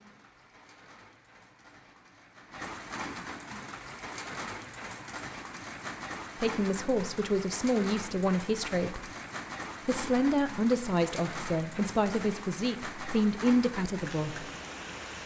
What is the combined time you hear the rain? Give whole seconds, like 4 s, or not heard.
15 s.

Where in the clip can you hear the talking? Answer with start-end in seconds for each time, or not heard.
6.4-9.1, 9.8-14.4.